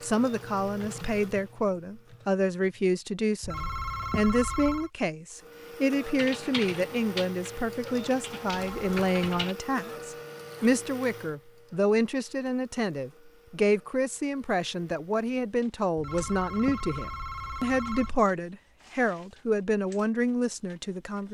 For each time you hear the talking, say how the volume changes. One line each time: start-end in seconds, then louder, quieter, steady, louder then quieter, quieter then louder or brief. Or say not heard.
0.0-21.2 steady.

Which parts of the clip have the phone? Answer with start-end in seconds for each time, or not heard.
3.4-4.9, 8.5-9.4, 15.9-18.2.